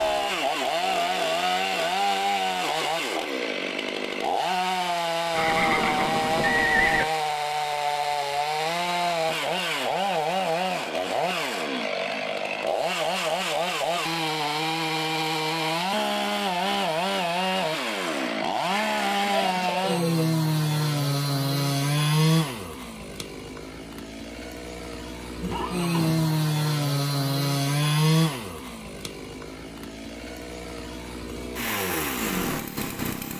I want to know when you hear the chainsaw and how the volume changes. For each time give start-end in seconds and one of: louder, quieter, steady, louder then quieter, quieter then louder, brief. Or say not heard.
0.0-33.3 steady.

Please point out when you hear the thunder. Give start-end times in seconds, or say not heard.
not heard.